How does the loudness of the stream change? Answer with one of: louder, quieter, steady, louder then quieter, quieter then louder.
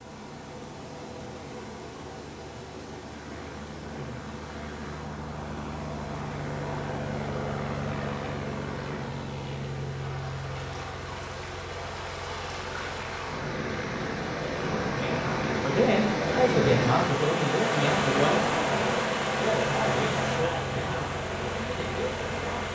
louder.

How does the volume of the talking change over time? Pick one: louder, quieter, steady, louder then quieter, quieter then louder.
quieter.